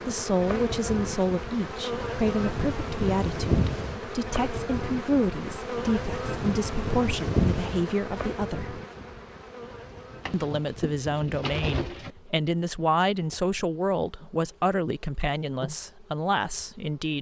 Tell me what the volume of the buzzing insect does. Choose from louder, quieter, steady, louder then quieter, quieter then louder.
quieter.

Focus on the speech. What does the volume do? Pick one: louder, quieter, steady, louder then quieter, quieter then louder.
steady.